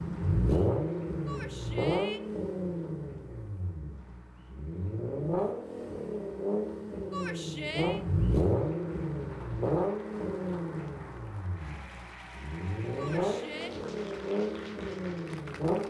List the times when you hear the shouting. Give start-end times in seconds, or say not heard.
1.2-2.2, 7.1-8.0, 12.9-13.7.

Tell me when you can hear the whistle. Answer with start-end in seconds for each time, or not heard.
not heard.